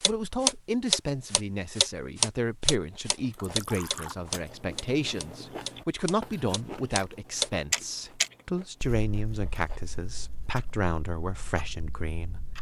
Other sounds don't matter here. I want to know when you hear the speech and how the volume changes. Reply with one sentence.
The speech can be heard from 0.1 to 12.5 s, at a steady volume.